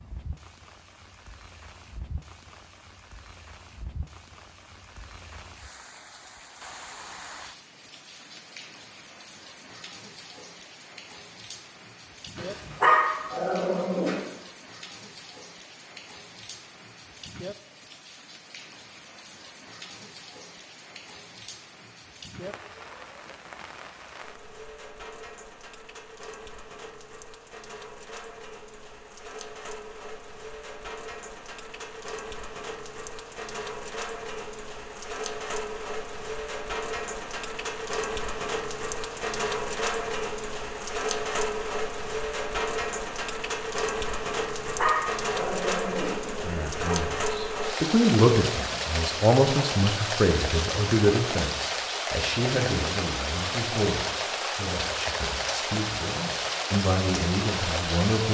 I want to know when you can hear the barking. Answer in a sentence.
The barking can be heard from 12.3 to 14.2 s and from 44.6 to 47.0 s.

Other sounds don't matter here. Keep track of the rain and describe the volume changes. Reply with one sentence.
The loudness of the rain goes up.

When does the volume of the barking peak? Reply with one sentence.
The volume of the barking peaks at 13 seconds.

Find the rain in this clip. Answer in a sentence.
You can hear the rain from 0.0 to 58.3 s.